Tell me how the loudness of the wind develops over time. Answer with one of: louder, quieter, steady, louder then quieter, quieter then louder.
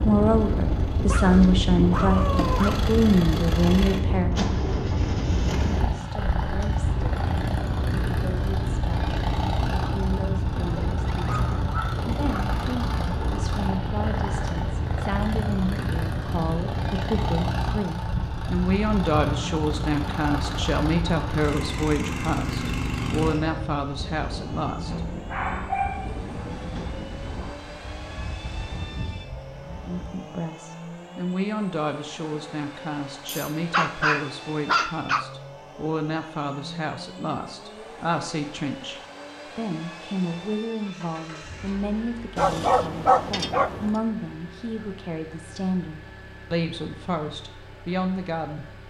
quieter.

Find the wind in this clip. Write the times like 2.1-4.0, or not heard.
0.0-30.1.